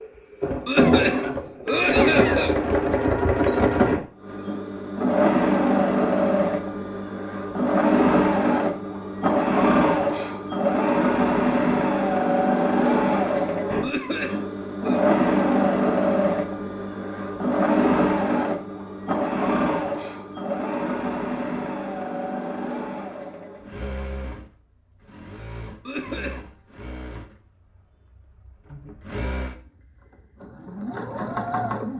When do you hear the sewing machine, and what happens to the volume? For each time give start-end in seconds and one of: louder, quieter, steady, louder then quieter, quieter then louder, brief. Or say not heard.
0.0-31.9 quieter.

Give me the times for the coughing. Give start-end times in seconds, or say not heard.
0.7-2.5, 13.8-15.0, 25.9-26.4.